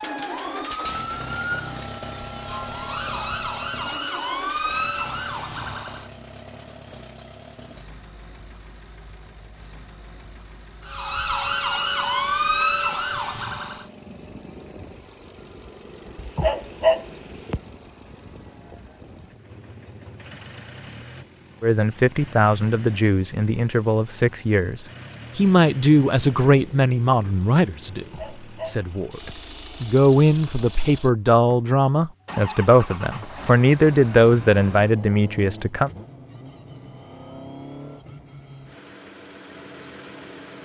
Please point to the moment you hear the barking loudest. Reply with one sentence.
The volume of the barking peaks at 17 seconds.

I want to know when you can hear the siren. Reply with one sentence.
You can hear the siren from 0.0 to 6.1 s and from 10.8 to 13.8 s.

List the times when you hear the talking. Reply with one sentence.
You can hear the talking from 21.6 to 28.1 s and from 28.6 to 35.9 s.